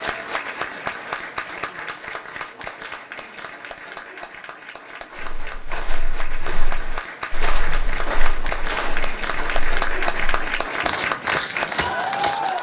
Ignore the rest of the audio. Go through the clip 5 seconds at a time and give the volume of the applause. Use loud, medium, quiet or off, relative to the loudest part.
medium, medium, loud.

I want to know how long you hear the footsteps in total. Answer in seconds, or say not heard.
7 s.